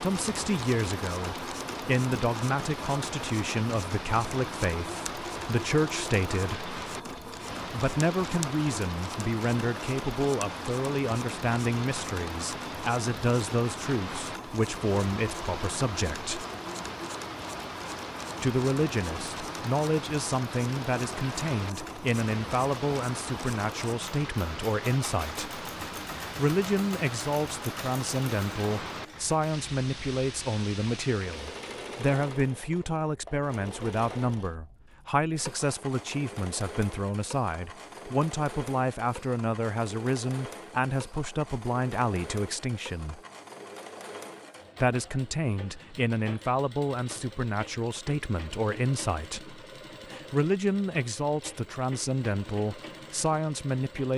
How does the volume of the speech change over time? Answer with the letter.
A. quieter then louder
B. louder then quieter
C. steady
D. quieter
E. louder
C.